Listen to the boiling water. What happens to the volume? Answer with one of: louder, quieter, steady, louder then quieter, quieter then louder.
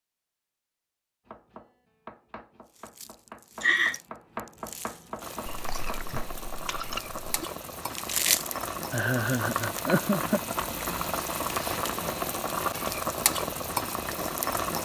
louder.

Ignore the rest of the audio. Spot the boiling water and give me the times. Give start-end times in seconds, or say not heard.
5.2-14.8.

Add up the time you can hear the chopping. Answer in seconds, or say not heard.
5 s.